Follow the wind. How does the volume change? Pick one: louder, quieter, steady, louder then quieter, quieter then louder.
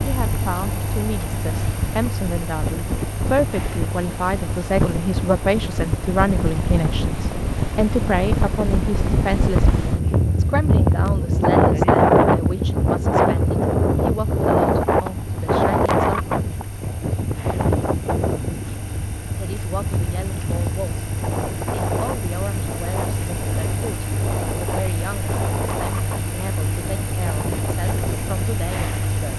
louder then quieter.